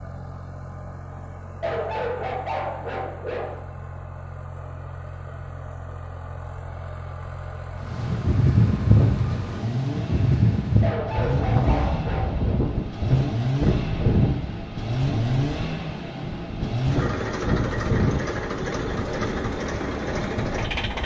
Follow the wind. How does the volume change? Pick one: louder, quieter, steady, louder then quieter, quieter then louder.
quieter.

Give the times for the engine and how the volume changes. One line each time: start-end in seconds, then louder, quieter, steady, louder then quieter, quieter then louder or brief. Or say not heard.
0.0-21.0 louder.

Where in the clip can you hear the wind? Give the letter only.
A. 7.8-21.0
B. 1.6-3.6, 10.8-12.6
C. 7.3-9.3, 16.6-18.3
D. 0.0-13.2
A.